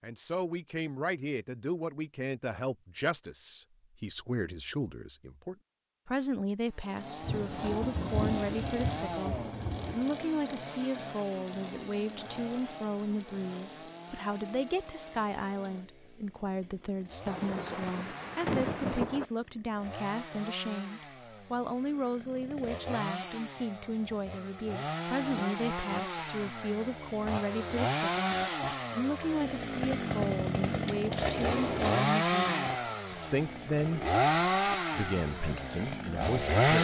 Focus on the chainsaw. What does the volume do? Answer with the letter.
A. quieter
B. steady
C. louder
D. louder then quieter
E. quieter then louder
E.